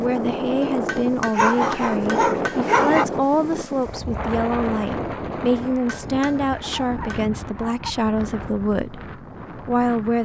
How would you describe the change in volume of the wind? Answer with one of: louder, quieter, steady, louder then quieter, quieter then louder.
quieter.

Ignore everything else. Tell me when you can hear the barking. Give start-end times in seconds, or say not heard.
1.4-3.0, 6.8-8.0.